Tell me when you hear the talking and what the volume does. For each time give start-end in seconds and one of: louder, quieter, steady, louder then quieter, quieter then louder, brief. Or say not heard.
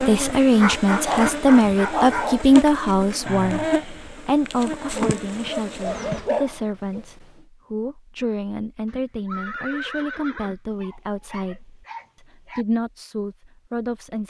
0.0-14.2 quieter.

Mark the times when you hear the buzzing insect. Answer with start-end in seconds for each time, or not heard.
0.0-6.3.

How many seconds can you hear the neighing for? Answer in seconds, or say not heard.
2 s.